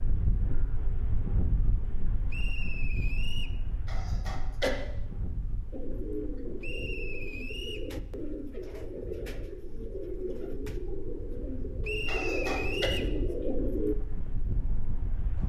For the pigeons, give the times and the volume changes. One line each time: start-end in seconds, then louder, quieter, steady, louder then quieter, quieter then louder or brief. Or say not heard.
5.7-13.9 louder.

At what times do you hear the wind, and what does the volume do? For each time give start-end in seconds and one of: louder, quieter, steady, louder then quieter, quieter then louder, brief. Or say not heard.
0.0-15.4 quieter then louder.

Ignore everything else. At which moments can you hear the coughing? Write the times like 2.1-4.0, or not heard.
3.9-4.8, 12.1-12.9.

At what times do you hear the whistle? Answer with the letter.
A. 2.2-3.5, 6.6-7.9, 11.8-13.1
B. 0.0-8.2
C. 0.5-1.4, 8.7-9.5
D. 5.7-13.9
A.